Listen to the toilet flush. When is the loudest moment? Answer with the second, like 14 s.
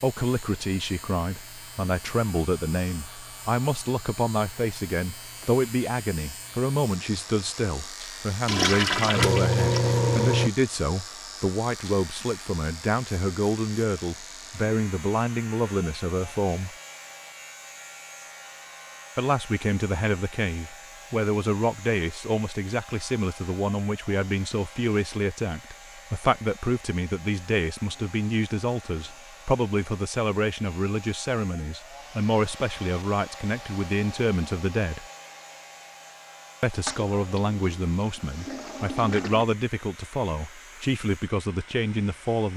10 s.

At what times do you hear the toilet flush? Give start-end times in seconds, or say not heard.
8.4-10.5, 36.9-39.5.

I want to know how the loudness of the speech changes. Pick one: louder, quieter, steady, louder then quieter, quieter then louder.
steady.